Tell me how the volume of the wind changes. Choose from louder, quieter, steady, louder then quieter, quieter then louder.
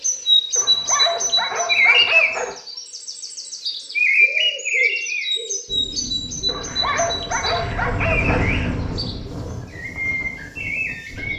louder then quieter.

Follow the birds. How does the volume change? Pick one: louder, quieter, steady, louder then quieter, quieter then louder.
quieter.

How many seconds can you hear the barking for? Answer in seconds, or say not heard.
4 s.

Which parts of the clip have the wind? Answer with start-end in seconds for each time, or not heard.
5.7-11.3.